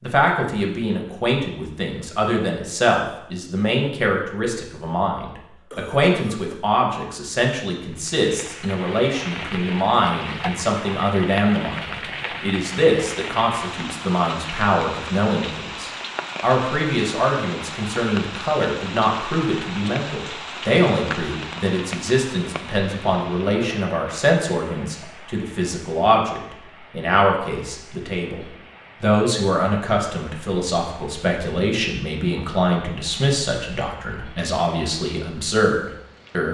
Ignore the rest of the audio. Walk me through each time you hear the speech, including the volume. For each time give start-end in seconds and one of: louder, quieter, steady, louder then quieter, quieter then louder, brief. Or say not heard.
0.0-36.4 steady.